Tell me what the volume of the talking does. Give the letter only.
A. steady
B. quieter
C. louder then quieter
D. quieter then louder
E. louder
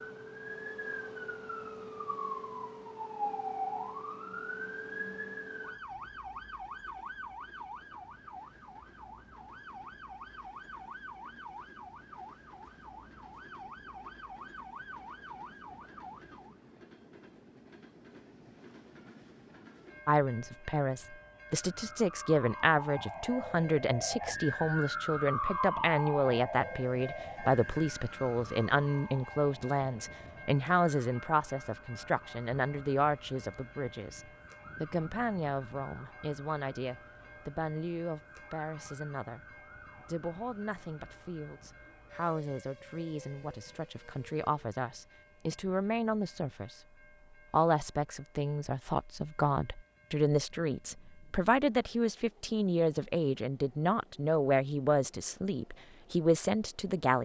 D.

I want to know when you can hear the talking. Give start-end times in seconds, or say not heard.
20.1-39.5, 40.0-46.8, 47.5-57.1.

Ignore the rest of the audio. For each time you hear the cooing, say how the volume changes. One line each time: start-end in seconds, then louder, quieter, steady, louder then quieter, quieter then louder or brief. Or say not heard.
not heard.